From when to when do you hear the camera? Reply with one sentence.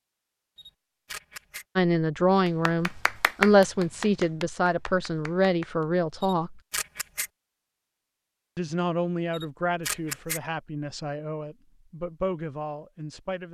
The camera can be heard from 0.6 to 1.6 s, from 6.2 to 7.3 s and from 9.3 to 10.4 s.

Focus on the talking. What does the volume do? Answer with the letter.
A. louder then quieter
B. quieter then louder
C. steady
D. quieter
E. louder
D.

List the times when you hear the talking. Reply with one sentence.
You can hear the talking from 1.8 to 6.6 s and from 8.6 to 13.4 s.